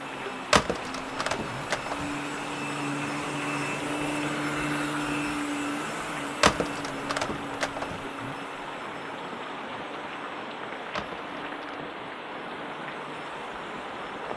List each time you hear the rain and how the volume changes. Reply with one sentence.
You can hear the rain from 0.0 to 14.3 s, at a steady volume.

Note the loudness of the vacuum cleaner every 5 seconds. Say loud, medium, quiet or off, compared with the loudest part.
loud, loud, quiet.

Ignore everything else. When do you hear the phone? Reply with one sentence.
The phone can be heard from 0.5 to 2.1 s, from 6.4 to 8.0 s and from 10.9 to 11.8 s.